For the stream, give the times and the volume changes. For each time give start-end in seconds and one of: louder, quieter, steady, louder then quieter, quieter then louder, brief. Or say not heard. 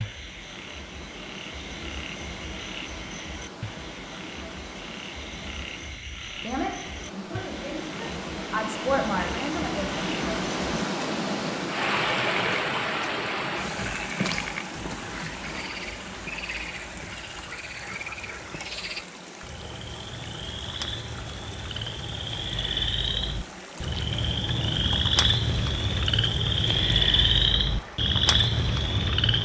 0.0-29.4 louder then quieter.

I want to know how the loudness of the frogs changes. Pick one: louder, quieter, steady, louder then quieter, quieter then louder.
louder.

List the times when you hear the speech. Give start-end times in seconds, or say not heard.
6.4-9.9.